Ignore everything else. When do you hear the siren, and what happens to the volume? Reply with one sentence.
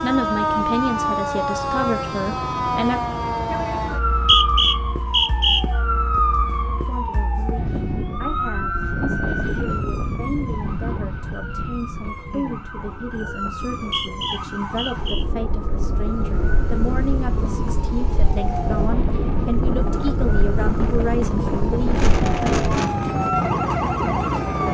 The siren can be heard from 0.0 to 24.7 s, getting quieter then louder.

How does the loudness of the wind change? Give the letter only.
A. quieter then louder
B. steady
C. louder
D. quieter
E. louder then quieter
A.